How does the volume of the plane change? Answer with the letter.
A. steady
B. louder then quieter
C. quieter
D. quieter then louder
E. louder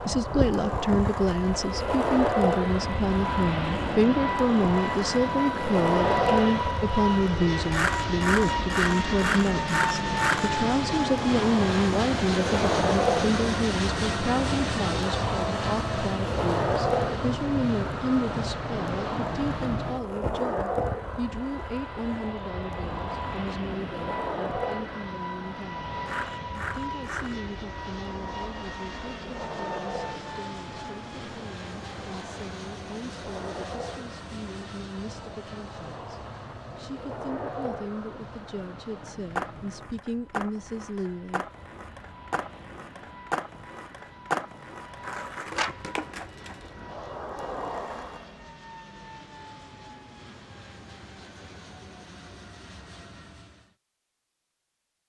C.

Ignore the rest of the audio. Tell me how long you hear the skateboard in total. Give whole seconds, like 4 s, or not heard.
48 s.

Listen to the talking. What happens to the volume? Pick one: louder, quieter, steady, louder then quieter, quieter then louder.
quieter.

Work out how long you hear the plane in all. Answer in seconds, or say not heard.
54 s.